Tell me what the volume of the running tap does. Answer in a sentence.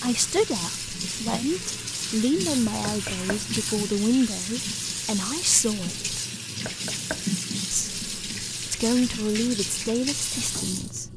The loudness of the running tap stays about the same.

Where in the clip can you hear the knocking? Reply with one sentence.
The knocking can be heard from 2.9 to 3.5 s and from 6.7 to 7.3 s.